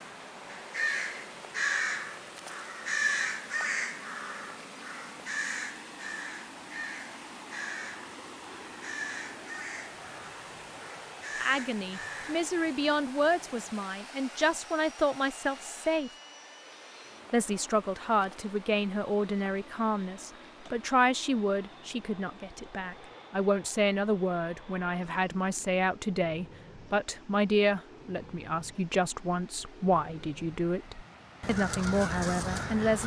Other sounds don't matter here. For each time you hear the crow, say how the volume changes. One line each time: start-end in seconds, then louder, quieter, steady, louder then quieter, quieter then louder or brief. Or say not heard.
0.5-12.5 quieter
31.4-33.0 brief.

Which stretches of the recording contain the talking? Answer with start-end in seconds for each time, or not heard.
11.4-16.1, 17.3-33.0.